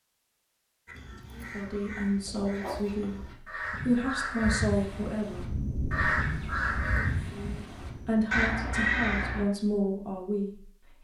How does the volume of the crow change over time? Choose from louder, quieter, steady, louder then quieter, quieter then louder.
louder.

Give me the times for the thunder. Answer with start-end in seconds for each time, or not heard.
4.7-8.3.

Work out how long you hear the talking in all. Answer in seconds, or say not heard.
8 s.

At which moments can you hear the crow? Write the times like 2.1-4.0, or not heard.
0.8-9.4.